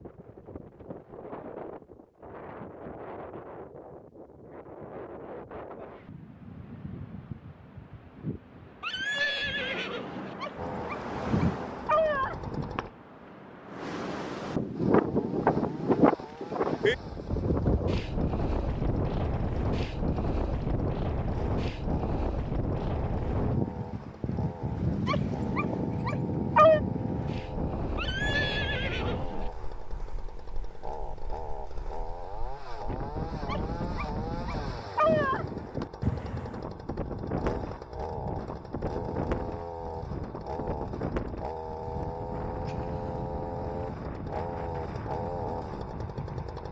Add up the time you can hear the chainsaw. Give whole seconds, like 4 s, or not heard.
34 s.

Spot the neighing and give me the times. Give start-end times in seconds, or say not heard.
8.8-10.3, 27.9-29.5, 42.5-43.3.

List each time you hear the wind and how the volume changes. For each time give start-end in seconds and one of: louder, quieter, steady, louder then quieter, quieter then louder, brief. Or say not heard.
0.0-46.6 louder then quieter.